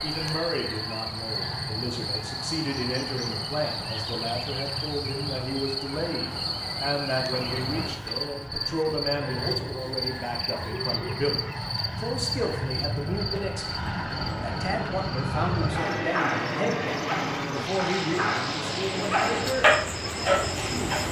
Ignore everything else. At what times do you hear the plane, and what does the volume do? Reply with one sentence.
The plane can be heard from 0.0 to 21.0 s, getting louder.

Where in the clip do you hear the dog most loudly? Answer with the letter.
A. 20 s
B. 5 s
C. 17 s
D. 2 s
A.